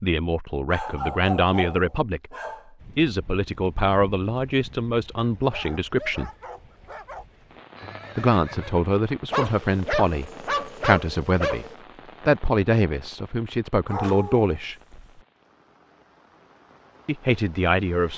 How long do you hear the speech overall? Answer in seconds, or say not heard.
13 s.